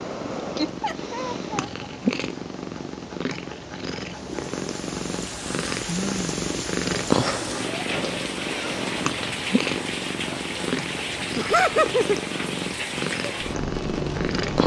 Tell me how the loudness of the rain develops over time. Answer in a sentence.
The volume of the rain stays about the same.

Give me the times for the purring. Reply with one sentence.
You can hear the purring from 0.0 to 14.6 s.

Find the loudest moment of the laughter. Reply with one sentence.
The volume of the laughter peaks at 12 seconds.